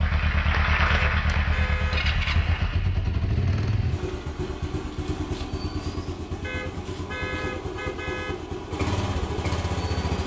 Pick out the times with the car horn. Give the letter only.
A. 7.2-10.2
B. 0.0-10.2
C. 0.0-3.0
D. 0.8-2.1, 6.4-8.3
D.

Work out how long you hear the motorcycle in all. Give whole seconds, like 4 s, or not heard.
10 s.